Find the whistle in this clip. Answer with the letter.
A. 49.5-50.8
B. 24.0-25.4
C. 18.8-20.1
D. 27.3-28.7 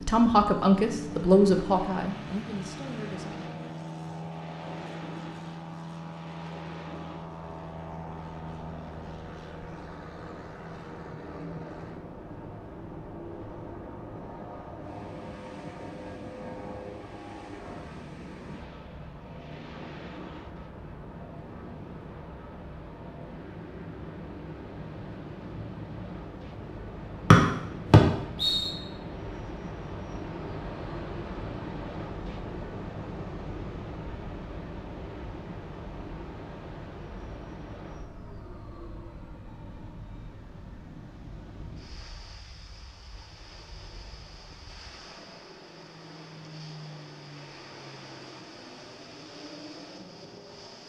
D.